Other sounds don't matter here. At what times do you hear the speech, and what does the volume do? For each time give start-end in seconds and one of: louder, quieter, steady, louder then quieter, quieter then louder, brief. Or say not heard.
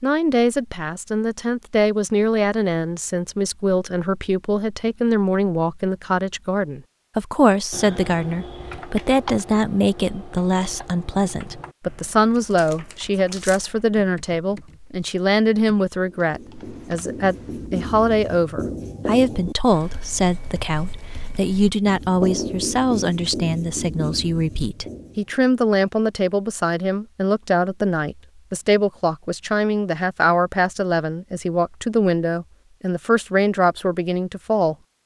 0.0-34.8 steady.